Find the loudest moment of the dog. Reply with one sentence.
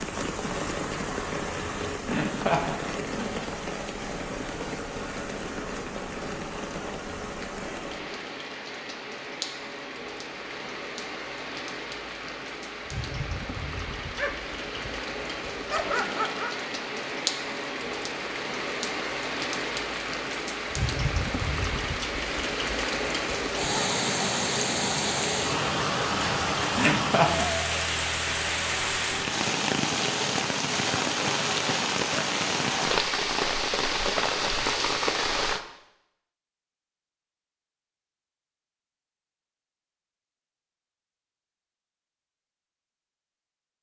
The volume of the dog peaks at 16 seconds.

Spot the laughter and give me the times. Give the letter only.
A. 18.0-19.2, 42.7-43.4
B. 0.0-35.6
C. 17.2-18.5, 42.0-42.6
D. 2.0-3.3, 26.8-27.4
D.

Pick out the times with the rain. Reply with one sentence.
You can hear the rain from 0.0 to 35.6 s.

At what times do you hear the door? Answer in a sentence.
The door can't be heard in this clip.